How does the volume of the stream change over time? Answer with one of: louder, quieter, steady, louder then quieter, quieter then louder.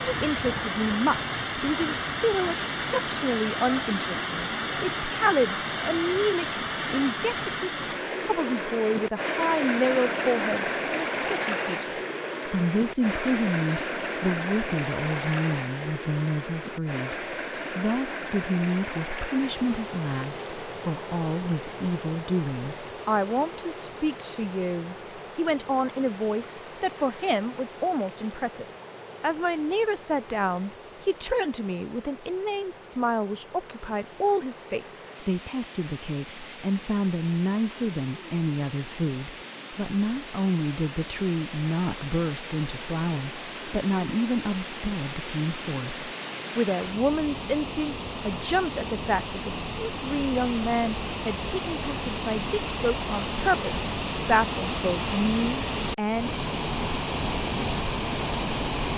quieter then louder.